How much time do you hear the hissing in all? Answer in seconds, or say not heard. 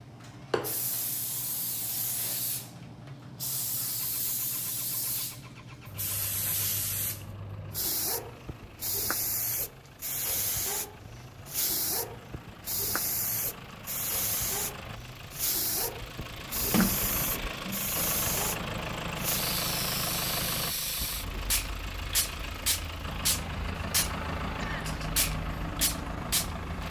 27 s.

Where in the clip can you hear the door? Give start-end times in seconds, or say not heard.
16.7-17.9.